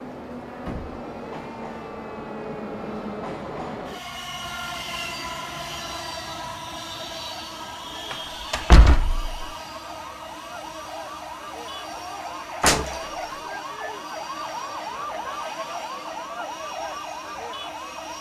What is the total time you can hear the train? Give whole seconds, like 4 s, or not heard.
18 s.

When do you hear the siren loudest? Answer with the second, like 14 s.
15 s.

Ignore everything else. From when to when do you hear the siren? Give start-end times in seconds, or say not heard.
0.0-18.1.